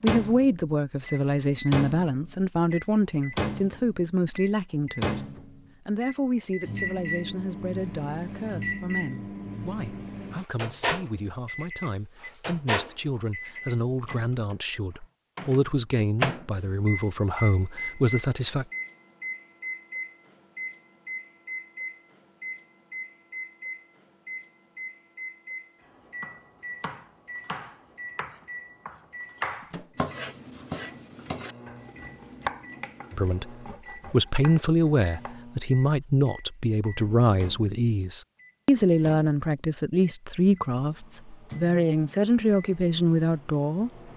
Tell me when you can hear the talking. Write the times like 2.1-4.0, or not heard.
0.0-5.2, 5.8-18.6, 33.1-43.9.